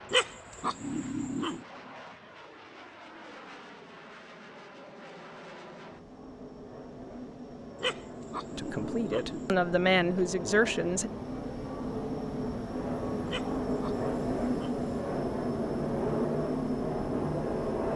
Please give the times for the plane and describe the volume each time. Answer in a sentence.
You can hear the plane from 0.0 to 17.9 s, getting louder.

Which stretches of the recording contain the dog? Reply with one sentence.
You can hear the dog from 0.1 to 1.6 s, from 7.8 to 9.6 s and from 13.2 to 14.8 s.